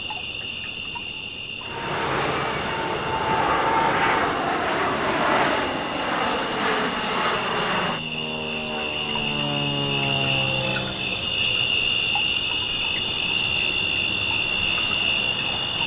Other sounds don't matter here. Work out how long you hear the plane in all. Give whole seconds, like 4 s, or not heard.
10 s.